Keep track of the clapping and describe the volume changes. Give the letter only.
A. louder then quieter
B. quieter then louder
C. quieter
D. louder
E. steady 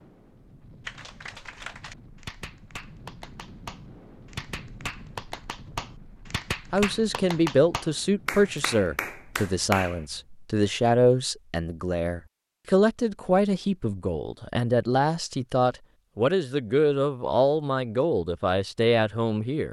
D.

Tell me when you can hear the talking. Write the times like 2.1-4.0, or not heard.
6.7-19.6.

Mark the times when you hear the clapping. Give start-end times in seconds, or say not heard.
0.8-10.1.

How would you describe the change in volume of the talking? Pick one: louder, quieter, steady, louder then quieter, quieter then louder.
steady.